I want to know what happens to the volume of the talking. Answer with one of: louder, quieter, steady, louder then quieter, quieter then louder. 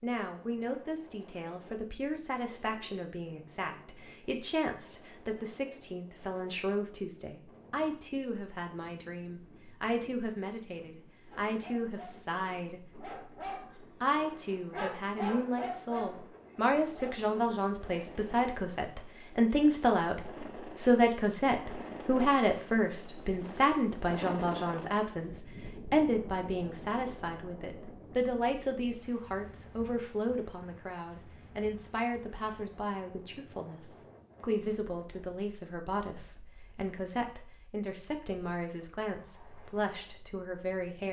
louder then quieter.